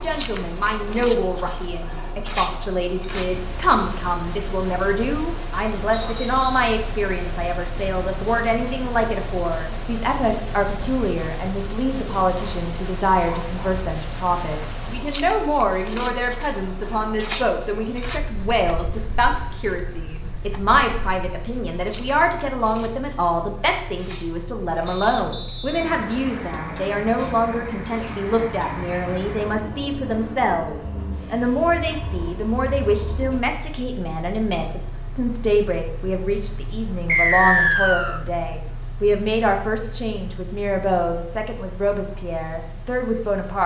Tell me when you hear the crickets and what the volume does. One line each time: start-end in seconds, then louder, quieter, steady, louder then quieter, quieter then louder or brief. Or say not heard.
0.0-43.6 quieter.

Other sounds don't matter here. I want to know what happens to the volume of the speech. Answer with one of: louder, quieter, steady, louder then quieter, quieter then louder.
steady.